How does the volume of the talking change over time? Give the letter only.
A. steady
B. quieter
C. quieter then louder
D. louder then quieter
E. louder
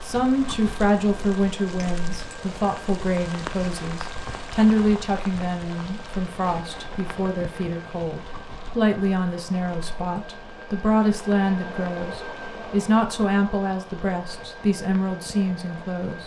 A.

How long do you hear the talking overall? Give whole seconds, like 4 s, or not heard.
16 s.